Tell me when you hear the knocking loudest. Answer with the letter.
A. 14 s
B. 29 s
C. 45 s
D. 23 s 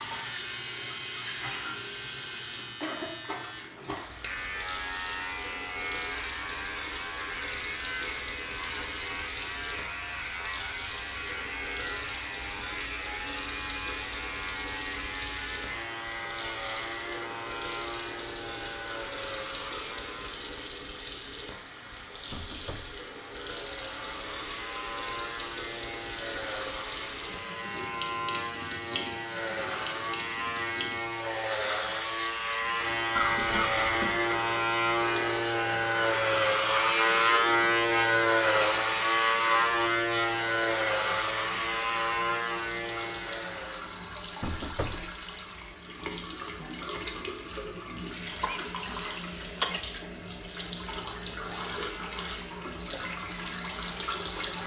C.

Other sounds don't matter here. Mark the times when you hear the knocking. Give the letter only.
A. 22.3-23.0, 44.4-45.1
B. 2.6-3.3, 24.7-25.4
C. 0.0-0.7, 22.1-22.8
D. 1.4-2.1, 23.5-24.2
A.